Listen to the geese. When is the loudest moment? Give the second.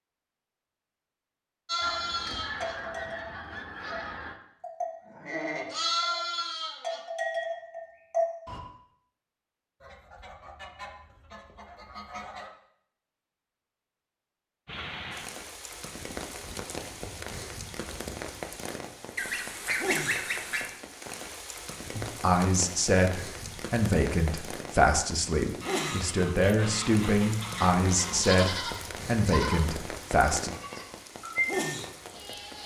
20 s.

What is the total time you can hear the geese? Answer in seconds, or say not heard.
10 s.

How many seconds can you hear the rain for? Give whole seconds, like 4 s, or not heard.
18 s.